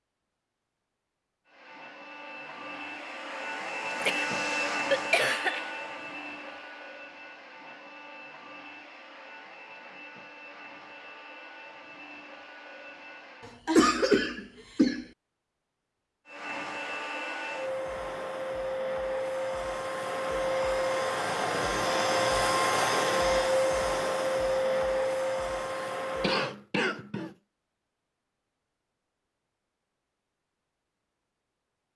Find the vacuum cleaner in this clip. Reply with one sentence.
You can hear the vacuum cleaner from 1.4 to 13.6 s and from 16.2 to 26.4 s.